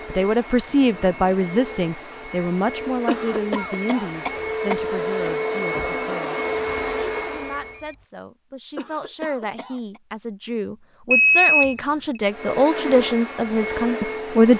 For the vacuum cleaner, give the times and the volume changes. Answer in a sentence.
The vacuum cleaner can be heard from 0.0 to 7.8 s, getting louder; and briefly from 12.2 to 14.5 s.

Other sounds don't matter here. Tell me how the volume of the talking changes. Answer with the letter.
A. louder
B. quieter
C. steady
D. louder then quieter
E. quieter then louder
E.